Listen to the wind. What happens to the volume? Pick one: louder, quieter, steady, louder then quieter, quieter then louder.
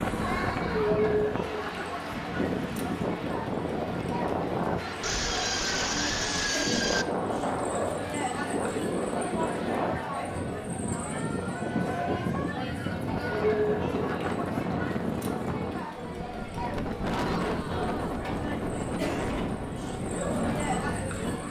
steady.